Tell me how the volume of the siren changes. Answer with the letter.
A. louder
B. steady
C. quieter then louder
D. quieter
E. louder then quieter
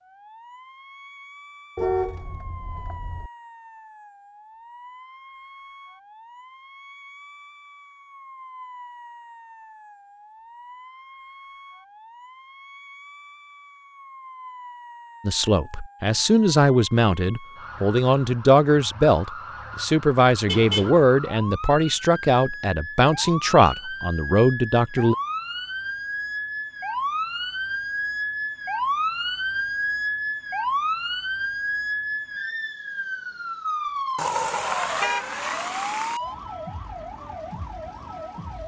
A.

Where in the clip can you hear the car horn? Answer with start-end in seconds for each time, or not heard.
1.8-3.3, 20.4-20.9, 34.1-36.2.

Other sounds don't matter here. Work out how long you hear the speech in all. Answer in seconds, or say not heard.
10 s.